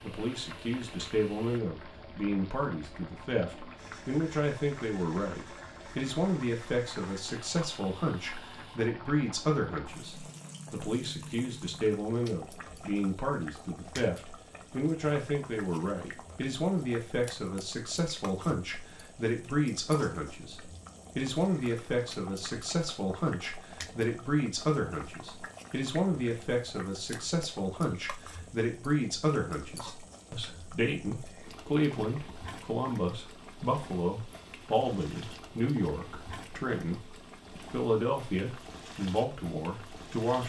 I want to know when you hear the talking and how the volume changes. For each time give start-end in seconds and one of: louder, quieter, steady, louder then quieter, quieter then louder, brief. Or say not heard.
0.0-40.4 steady.